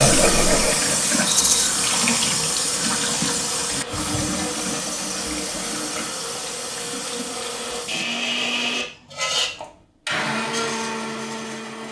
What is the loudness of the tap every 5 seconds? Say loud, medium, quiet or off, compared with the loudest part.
loud, medium, off.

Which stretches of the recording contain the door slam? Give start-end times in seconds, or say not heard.
not heard.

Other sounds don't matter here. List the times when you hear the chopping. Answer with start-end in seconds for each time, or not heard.
not heard.